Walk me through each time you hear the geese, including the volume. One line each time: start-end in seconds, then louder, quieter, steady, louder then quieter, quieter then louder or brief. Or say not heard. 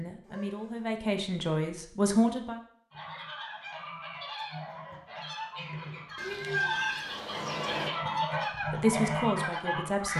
2.9-10.1 louder.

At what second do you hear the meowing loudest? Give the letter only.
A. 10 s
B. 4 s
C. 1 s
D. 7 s
D.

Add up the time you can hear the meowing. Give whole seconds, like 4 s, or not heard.
2 s.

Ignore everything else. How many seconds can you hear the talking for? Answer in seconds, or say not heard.
4 s.